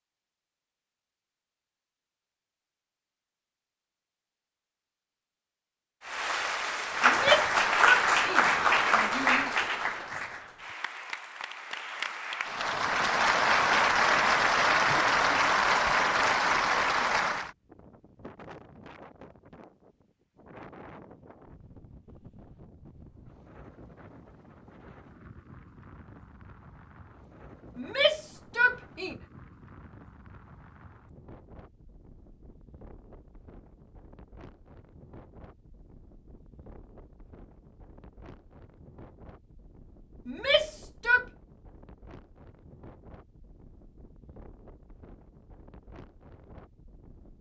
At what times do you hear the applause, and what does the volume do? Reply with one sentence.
The applause can be heard from 6.0 to 17.5 s, getting quieter then louder.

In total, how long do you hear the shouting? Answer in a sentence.
The shouting can be heard for 5 seconds in total.